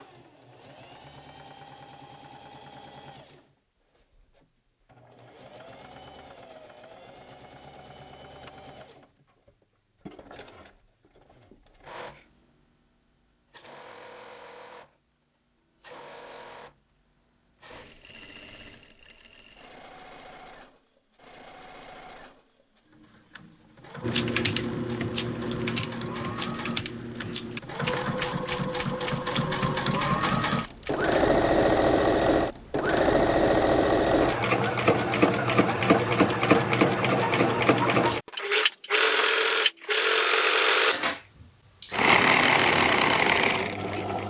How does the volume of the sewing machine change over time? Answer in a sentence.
The volume of the sewing machine goes up.